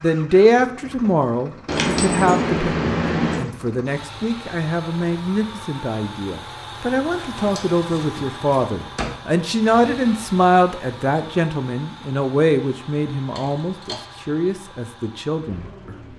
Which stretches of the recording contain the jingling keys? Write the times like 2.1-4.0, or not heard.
1.6-3.5, 7.1-9.1, 13.3-14.1.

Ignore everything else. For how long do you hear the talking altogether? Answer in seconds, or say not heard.
16 s.